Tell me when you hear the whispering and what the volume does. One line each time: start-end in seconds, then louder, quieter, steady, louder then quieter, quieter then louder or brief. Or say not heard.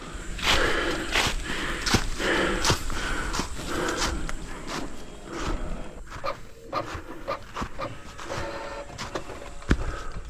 not heard.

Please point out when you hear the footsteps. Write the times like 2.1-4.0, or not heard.
0.0-10.2.